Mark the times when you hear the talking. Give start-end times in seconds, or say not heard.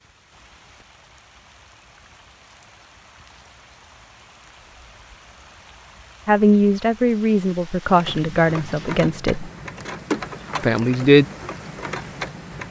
6.2-9.5, 10.6-11.2.